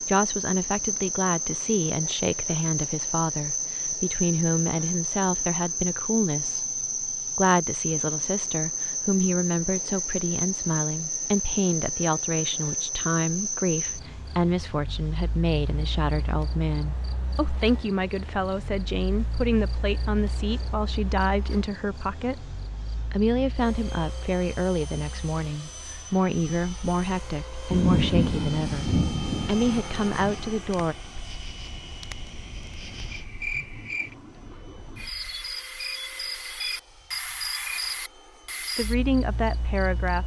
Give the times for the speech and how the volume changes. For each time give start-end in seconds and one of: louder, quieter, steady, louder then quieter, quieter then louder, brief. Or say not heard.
0.1-30.9 steady
38.8-40.2 brief.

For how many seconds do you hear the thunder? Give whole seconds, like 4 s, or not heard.
3 s.